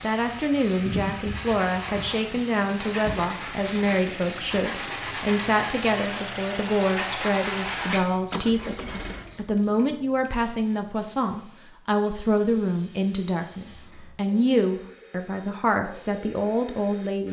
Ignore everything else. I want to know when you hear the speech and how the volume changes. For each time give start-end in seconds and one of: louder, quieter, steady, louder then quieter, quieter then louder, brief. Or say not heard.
0.0-17.2 steady.